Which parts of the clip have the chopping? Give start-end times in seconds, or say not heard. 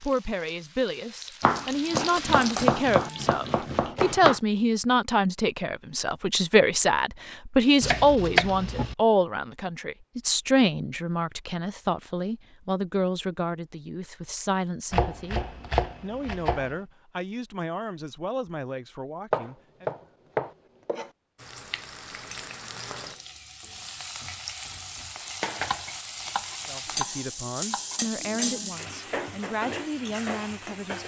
1.4-4.4, 7.8-8.9, 14.9-16.8, 19.3-21.1, 25.2-28.0.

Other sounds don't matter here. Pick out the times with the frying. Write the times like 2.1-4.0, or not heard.
0.0-4.0, 21.4-31.0.